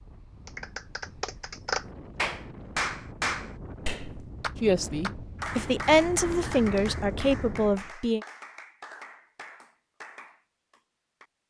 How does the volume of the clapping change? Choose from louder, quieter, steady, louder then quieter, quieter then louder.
quieter.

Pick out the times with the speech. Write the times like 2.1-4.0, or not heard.
4.6-8.2.